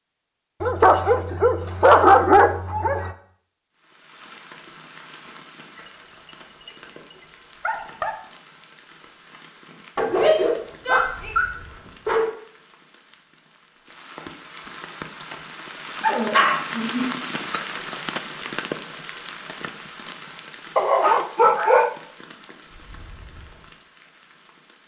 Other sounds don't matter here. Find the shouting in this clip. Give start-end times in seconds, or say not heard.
10.1-11.3.